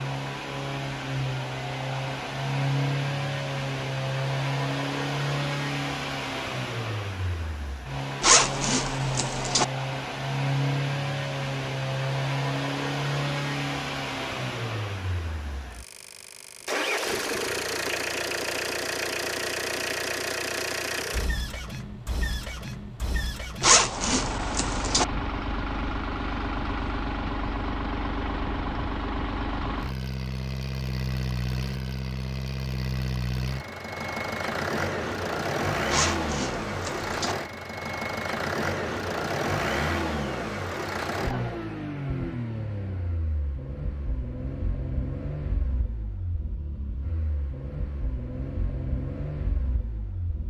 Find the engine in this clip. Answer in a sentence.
You can hear the engine from 0.0 to 50.4 s.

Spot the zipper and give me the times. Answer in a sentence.
You can hear the zipper from 8.2 to 9.7 s, from 23.6 to 25.1 s and from 35.9 to 37.4 s.